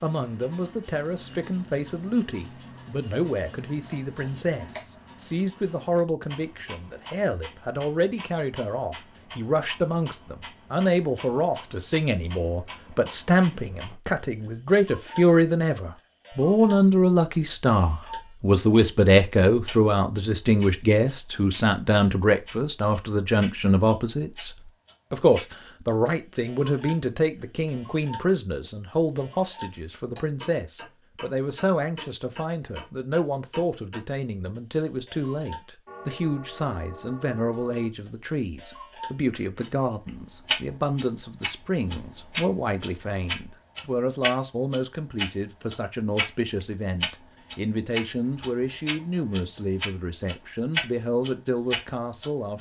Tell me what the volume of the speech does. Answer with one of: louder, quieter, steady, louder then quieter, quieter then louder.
louder then quieter.